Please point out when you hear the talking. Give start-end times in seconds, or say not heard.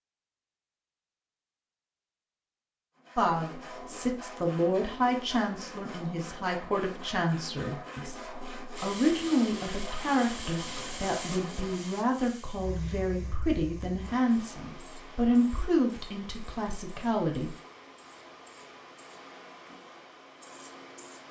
3.1-17.6.